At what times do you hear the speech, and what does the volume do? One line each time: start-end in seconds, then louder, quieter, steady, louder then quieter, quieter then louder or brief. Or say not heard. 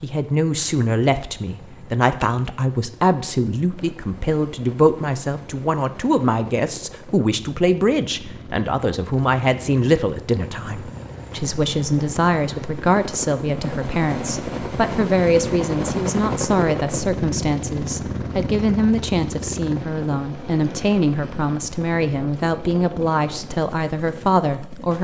0.0-24.9 steady.